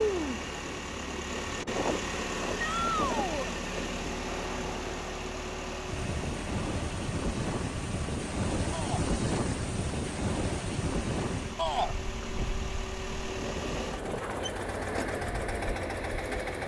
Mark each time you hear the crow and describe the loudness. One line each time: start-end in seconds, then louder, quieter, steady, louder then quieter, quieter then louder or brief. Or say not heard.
not heard.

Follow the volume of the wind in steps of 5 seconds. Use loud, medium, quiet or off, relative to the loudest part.
medium, loud, loud, off.